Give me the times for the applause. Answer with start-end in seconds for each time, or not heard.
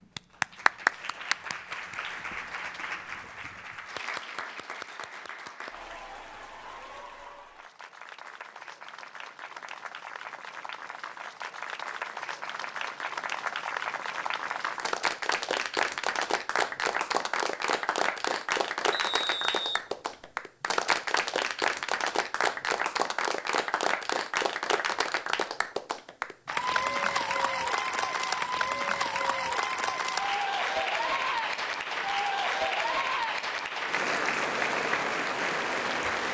0.1-36.2.